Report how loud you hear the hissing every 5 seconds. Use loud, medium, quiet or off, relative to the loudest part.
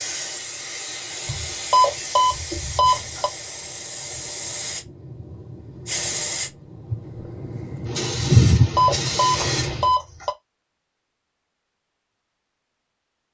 medium, loud, off.